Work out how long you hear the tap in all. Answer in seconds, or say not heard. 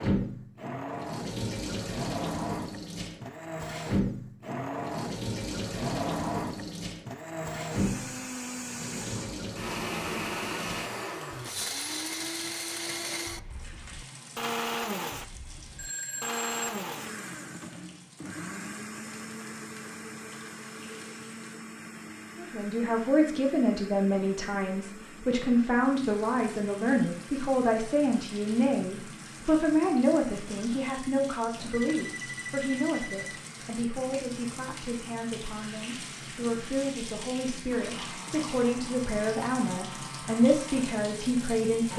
38 s.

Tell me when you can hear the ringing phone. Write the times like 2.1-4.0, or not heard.
15.8-16.8, 31.7-33.5.